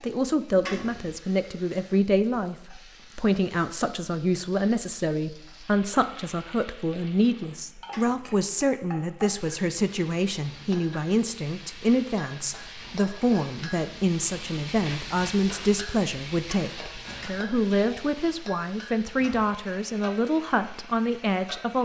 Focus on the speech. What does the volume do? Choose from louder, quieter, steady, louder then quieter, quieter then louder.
steady.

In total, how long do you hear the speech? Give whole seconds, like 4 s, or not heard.
22 s.